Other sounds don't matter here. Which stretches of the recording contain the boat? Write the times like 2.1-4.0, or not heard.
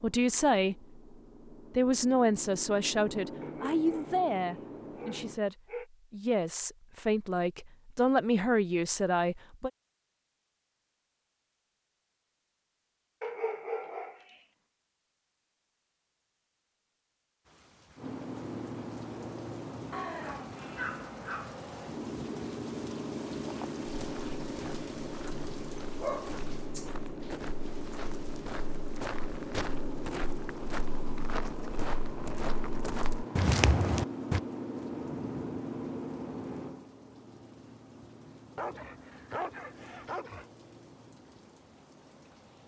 0.0-5.4, 17.9-42.6.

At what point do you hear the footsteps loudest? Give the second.
34 s.